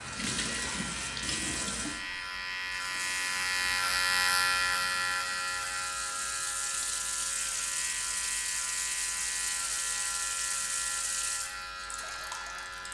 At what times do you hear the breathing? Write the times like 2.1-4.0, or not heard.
not heard.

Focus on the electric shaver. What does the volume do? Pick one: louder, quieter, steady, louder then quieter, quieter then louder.
louder then quieter.